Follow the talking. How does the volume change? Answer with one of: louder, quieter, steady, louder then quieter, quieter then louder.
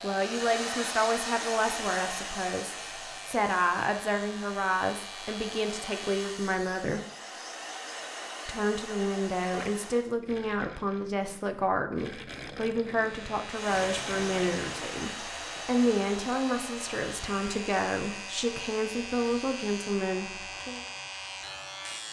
steady.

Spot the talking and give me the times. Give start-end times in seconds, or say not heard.
0.0-7.0, 8.4-20.9.